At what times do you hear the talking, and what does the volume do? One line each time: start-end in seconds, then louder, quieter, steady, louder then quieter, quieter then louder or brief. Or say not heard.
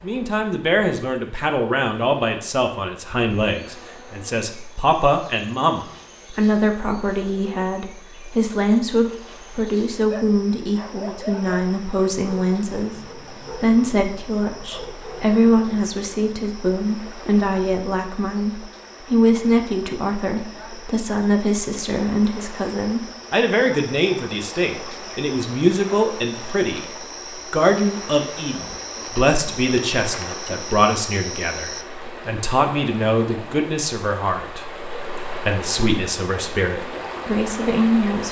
0.0-38.2 steady.